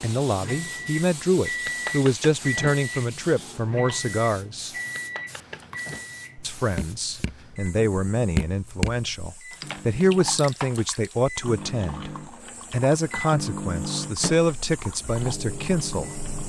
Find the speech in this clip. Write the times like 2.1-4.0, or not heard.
0.0-4.8, 6.4-16.1.